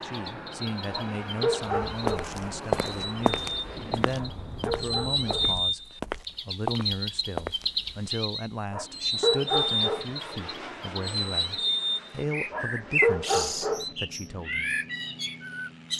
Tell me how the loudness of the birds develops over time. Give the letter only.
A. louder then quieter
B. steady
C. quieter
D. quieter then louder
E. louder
E.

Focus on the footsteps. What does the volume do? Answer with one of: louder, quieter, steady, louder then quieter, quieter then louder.
quieter then louder.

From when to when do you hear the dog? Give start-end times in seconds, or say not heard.
0.9-2.2, 4.2-5.5, 8.7-10.1, 12.5-13.8.